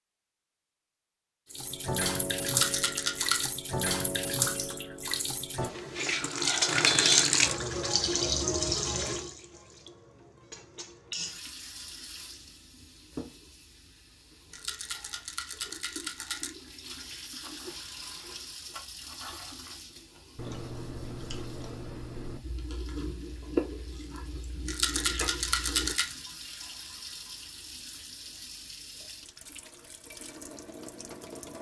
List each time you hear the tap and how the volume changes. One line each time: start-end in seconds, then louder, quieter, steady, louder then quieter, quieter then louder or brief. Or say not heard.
1.5-31.5 quieter then louder.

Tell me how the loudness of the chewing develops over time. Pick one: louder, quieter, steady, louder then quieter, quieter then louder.
louder.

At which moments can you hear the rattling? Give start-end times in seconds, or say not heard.
2.5-3.5, 14.5-16.5, 24.6-26.1.